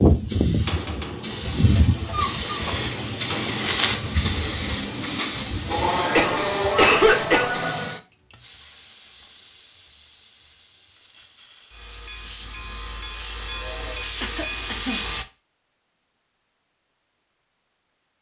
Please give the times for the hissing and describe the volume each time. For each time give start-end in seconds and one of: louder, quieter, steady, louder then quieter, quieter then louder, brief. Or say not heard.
0.0-15.2 quieter then louder.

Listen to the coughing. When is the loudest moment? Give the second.
7 s.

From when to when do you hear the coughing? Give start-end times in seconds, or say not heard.
1.4-2.8, 6.2-7.5, 14.2-15.1.